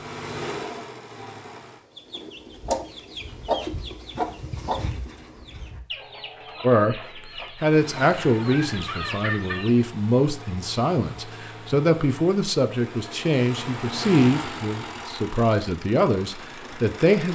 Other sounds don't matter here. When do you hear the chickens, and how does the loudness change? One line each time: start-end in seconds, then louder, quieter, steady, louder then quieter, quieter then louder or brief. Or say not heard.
1.9-9.8 quieter then louder.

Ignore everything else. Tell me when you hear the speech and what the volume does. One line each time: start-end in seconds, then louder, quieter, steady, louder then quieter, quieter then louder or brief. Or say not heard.
6.6-7.0 brief
7.6-17.3 steady.